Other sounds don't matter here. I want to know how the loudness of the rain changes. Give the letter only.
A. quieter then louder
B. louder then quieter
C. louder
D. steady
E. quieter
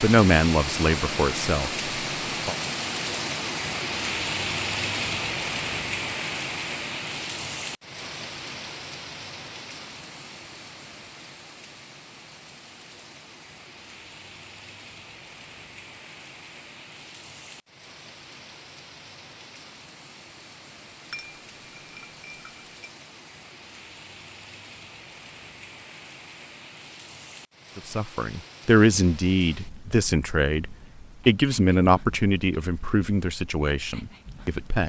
E.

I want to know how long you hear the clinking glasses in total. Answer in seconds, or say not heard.
2 s.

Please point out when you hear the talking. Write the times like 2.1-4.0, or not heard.
0.0-2.5, 27.8-34.8.